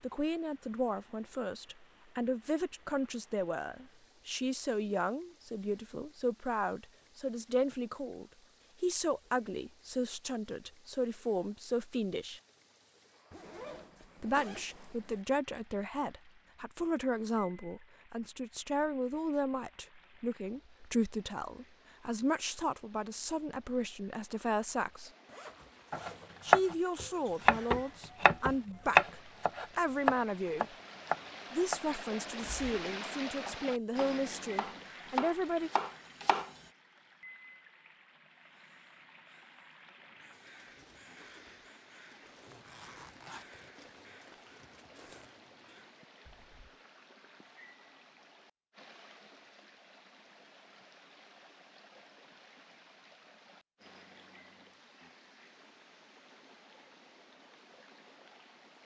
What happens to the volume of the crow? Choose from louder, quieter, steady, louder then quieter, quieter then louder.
louder.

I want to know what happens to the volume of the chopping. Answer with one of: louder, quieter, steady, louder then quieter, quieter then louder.
quieter.